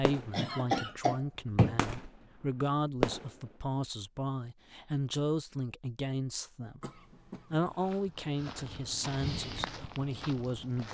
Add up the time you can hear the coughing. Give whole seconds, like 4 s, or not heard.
3 s.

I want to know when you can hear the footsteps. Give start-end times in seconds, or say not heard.
7.7-10.8.